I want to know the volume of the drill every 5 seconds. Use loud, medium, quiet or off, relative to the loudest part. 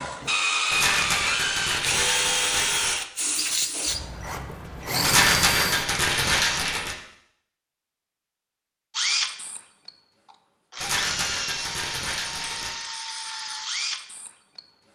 loud, loud, medium.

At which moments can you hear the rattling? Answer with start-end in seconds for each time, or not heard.
0.7-3.0, 5.0-7.0, 10.8-12.8.